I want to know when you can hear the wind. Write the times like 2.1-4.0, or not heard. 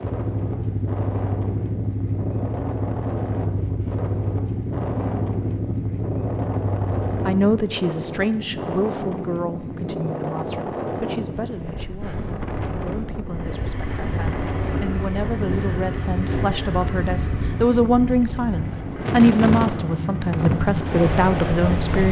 0.0-22.0.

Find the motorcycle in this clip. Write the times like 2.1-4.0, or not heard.
0.0-7.5, 13.2-22.0.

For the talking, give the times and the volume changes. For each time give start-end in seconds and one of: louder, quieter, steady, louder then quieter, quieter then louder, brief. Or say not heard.
7.2-22.0 quieter then louder.